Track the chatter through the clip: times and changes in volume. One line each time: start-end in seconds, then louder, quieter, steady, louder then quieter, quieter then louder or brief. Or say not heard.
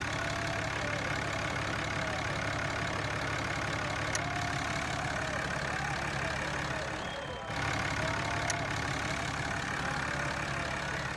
0.1-11.1 steady.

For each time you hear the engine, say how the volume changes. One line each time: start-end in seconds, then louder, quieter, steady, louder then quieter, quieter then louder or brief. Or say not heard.
0.0-11.1 steady.